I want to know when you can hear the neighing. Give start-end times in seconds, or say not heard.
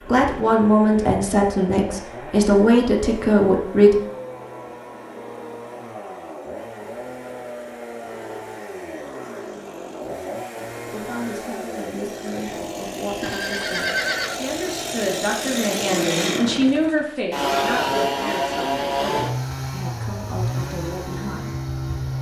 13.2-14.4.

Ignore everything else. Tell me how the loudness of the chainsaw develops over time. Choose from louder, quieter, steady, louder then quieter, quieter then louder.
louder.